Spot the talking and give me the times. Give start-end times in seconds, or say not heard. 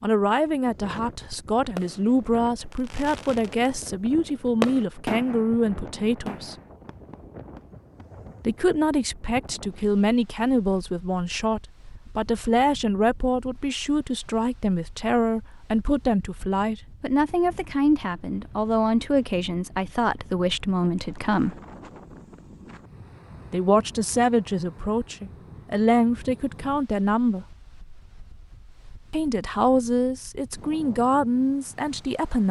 0.0-6.5, 8.4-21.6, 23.5-27.4, 29.1-32.4.